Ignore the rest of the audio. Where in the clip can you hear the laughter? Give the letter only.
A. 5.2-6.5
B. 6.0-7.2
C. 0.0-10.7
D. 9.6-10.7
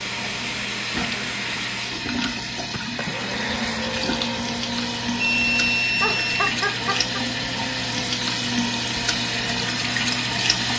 B.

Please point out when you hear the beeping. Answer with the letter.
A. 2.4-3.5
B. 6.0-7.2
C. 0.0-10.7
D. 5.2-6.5
D.